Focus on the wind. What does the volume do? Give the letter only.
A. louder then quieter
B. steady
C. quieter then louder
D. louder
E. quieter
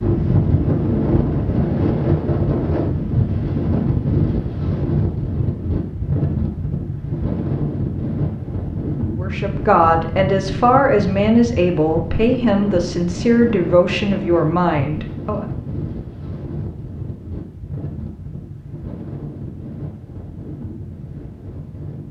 E.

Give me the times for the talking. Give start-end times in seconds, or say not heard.
9.2-15.4.